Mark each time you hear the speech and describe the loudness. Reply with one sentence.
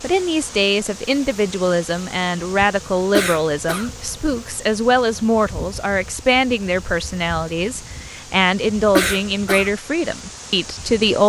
You can hear the speech from 0.0 to 11.2 s, at a steady volume.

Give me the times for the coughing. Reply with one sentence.
The coughing can be heard from 3.1 to 3.9 s and from 8.9 to 9.7 s.